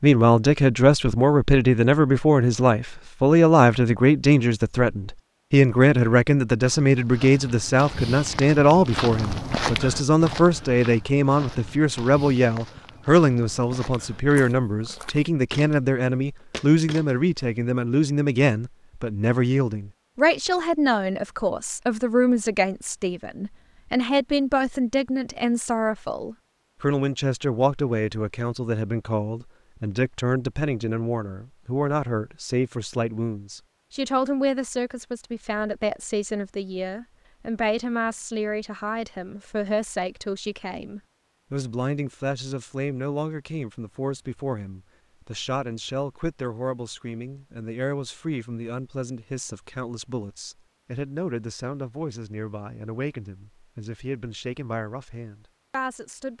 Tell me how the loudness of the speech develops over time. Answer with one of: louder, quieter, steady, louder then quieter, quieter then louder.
quieter.